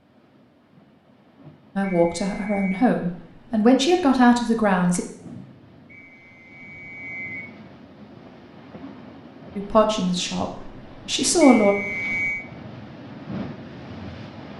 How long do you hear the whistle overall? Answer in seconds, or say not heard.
4 s.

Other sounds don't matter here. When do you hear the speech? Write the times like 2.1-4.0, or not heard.
1.8-5.0, 9.6-11.8.